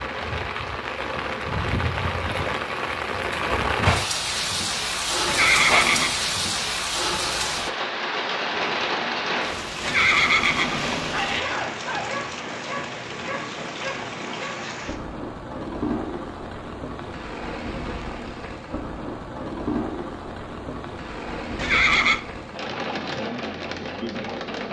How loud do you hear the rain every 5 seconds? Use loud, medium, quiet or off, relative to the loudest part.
loud, loud, medium, medium, medium.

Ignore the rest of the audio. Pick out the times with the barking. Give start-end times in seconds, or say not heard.
11.1-12.2.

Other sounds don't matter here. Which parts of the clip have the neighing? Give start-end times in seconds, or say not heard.
5.2-6.2, 9.8-11.4, 21.6-22.2.